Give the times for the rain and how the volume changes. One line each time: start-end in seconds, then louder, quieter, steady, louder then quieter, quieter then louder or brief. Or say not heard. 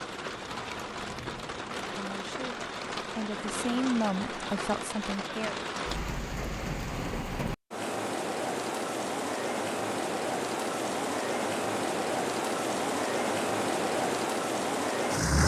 0.0-15.4 louder.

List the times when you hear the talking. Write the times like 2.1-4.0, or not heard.
1.9-5.5.